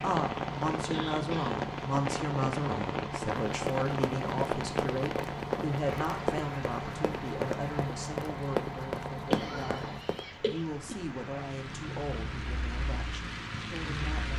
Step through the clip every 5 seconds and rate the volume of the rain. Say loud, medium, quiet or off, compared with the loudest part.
loud, medium, medium.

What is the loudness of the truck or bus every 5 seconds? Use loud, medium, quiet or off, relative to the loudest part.
loud, loud, medium.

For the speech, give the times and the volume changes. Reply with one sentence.
The speech can be heard from 0.0 to 14.3 s, getting quieter.